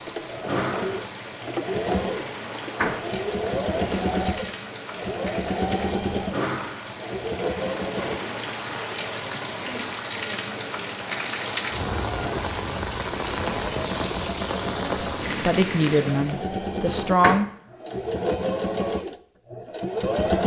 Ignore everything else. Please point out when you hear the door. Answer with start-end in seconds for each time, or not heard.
2.5-3.0, 16.9-17.9.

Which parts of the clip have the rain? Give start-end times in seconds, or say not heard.
0.0-16.4.